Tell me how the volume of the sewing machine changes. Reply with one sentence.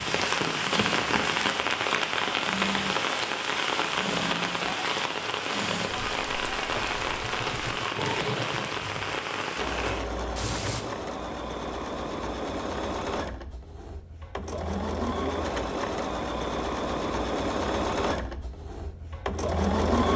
The loudness of the sewing machine goes up.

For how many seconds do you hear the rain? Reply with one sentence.
The rain can be heard for 11 seconds in total.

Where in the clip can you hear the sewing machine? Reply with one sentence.
You can hear the sewing machine from 0.7 to 20.1 s.